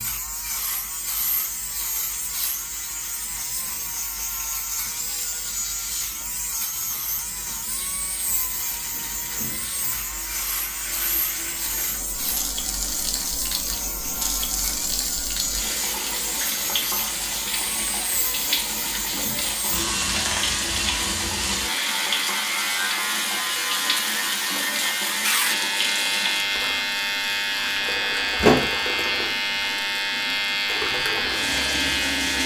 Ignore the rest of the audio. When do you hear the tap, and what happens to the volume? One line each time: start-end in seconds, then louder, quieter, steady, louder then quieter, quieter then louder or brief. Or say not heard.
0.2-32.4 louder.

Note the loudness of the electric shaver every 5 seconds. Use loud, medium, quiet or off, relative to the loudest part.
medium, medium, medium, medium, loud, loud, loud.